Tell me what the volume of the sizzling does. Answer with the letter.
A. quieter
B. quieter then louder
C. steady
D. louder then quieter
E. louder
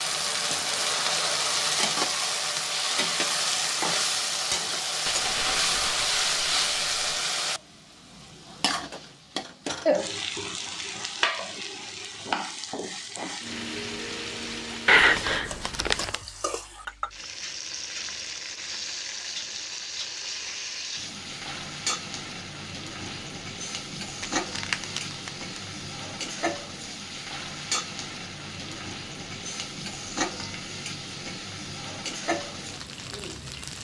A.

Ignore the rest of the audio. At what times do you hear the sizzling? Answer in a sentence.
You can hear the sizzling from 0.0 to 33.7 s.